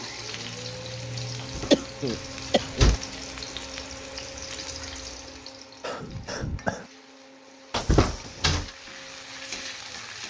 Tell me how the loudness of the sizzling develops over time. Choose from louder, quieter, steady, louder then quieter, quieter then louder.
quieter then louder.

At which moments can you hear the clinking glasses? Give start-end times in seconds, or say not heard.
not heard.